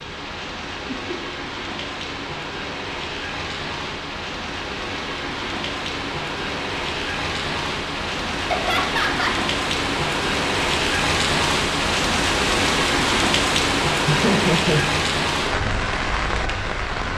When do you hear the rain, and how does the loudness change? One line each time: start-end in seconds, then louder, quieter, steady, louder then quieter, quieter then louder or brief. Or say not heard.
0.0-17.1 louder.